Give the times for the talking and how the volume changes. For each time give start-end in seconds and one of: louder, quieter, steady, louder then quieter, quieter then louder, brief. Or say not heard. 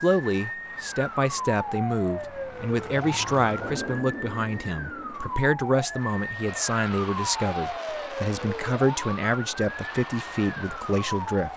0.0-11.5 steady.